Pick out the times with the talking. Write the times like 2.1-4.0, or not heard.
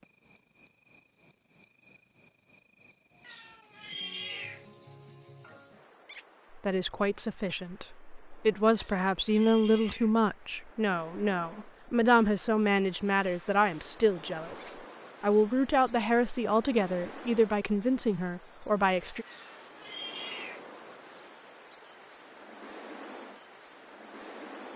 6.5-19.2.